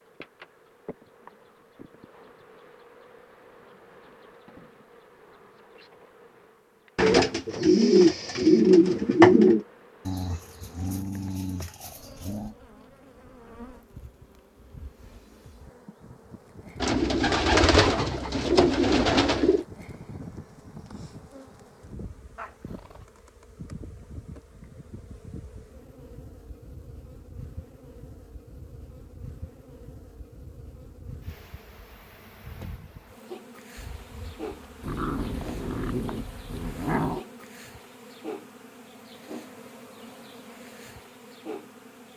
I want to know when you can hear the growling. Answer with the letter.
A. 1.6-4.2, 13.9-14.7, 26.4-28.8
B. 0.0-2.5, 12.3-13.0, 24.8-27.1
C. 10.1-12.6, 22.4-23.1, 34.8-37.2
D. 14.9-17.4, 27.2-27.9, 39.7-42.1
C.